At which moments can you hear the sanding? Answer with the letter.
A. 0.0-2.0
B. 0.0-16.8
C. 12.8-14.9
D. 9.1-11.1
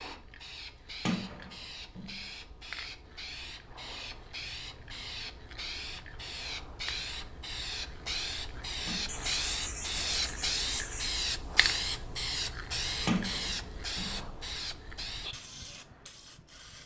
D.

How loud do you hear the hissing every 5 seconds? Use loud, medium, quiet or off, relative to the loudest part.
medium, loud, loud, medium.